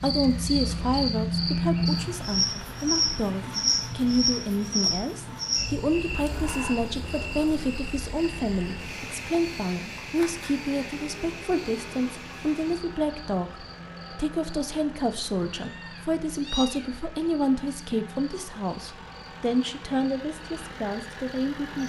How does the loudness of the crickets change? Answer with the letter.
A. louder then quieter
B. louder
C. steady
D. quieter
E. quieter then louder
D.